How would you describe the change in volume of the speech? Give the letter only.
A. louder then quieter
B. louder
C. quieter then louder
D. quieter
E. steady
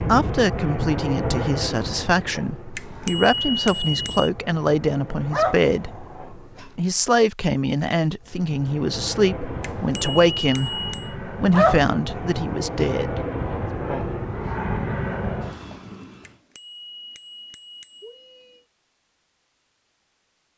E.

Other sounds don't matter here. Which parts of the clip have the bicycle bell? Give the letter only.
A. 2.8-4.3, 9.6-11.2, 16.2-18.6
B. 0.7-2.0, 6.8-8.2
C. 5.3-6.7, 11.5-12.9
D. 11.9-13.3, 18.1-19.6
A.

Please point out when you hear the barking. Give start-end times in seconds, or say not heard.
5.3-6.7, 11.5-12.9.